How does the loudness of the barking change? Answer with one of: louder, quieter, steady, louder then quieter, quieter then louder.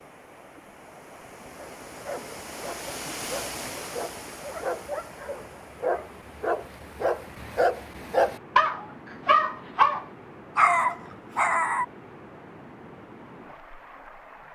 louder.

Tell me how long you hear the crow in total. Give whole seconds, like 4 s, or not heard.
not heard.